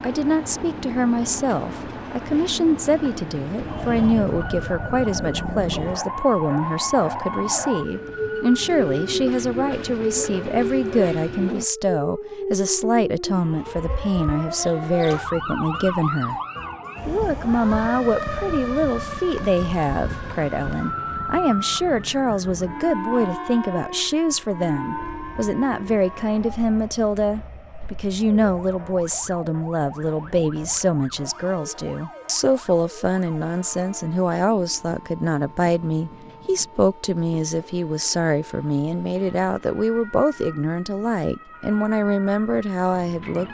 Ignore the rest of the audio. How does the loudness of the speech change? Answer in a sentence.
The volume of the speech stays about the same.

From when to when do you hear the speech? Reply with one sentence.
The speech can be heard from 0.0 to 16.4 s and from 17.1 to 43.4 s.